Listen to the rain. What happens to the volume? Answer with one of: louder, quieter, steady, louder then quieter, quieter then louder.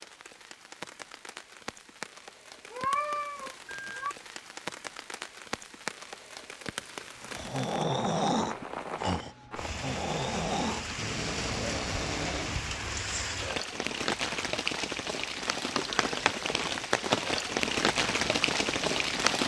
louder.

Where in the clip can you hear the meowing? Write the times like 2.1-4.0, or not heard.
2.7-4.2.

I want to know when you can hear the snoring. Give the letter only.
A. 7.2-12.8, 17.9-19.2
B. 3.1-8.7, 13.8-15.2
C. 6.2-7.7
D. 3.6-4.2
A.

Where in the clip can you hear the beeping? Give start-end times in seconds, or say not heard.
3.6-4.2.